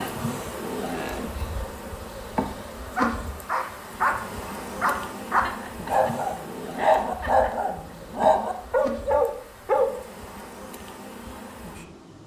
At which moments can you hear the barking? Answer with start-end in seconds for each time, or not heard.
3.0-9.9.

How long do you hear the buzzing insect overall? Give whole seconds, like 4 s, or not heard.
12 s.